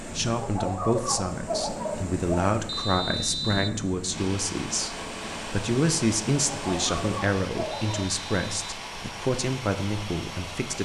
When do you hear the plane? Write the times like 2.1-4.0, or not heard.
4.1-10.8.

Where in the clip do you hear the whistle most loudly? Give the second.
3 s.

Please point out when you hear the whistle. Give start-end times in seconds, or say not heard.
2.6-3.8, 7.7-8.6.